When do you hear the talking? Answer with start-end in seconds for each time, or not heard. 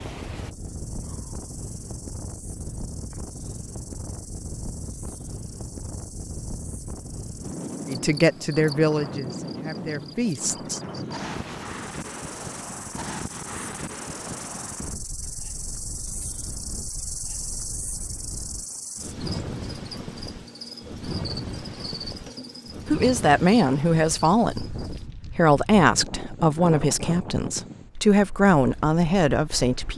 7.8-10.8, 22.9-29.9.